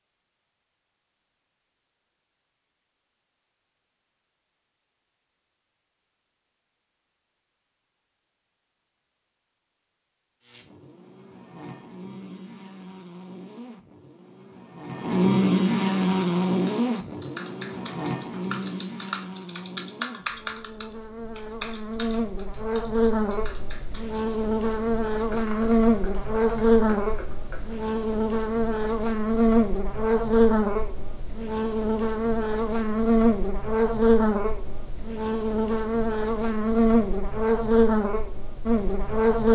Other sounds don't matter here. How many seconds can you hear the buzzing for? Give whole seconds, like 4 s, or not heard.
29 s.